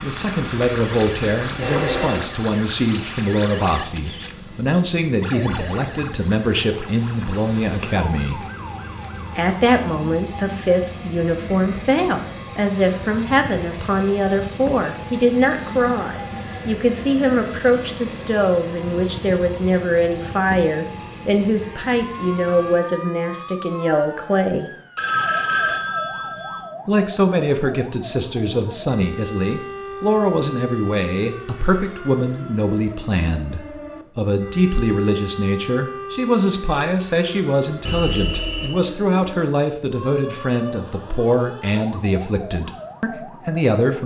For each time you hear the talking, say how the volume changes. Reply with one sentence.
The talking can be heard from 0.0 to 8.4 s, at a steady volume; from 9.3 to 24.7 s, at a steady volume; and from 26.9 to 44.0 s, at a steady volume.